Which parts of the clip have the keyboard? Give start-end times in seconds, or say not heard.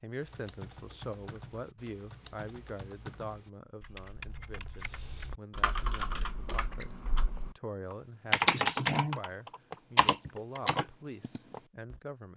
0.2-11.9.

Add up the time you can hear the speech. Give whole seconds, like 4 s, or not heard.
12 s.